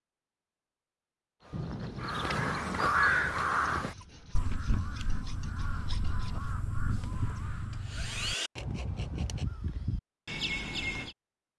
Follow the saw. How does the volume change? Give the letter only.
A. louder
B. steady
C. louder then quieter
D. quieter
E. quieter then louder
A.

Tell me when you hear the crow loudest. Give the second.
3 s.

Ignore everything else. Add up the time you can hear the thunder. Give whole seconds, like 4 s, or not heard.
2 s.